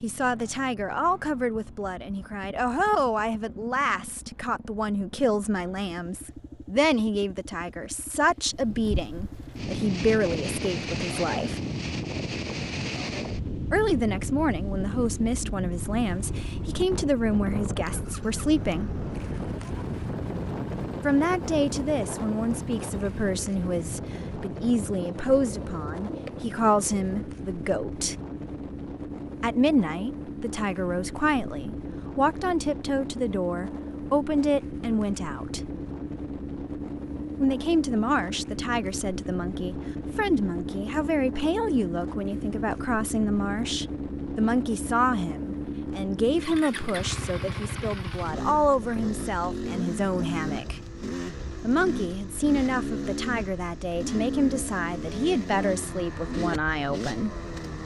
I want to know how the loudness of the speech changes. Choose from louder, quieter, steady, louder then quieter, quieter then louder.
steady.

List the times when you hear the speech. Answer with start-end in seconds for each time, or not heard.
0.0-11.6, 13.7-18.9, 21.0-28.1, 29.4-35.6, 37.4-50.8, 51.6-57.3.